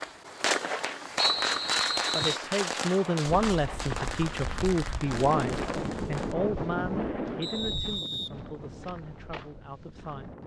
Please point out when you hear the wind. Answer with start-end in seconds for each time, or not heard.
5.0-10.4.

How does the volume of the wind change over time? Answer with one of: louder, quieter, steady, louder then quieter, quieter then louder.
quieter.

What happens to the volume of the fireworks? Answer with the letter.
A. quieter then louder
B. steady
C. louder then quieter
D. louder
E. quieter
E.